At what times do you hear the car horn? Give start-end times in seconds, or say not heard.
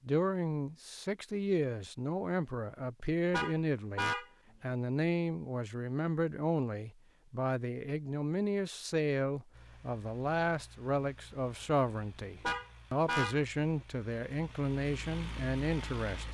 3.3-4.2, 12.4-13.8.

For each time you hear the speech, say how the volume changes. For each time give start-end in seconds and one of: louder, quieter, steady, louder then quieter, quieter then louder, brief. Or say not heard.
0.1-16.2 steady.